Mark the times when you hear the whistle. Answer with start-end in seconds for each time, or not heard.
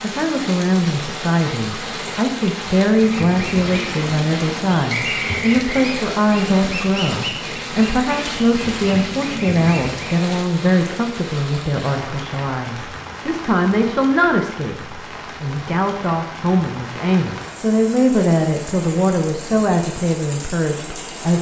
4.9-5.9.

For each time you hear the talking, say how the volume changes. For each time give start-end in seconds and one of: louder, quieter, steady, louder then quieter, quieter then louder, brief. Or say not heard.
0.0-21.3 steady.